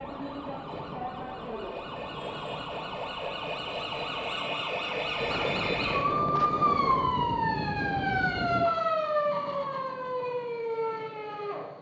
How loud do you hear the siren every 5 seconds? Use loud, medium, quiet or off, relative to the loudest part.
medium, loud, medium.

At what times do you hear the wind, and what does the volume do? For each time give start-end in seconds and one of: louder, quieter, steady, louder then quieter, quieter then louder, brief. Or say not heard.
0.0-8.7 louder.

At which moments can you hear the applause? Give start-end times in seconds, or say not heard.
not heard.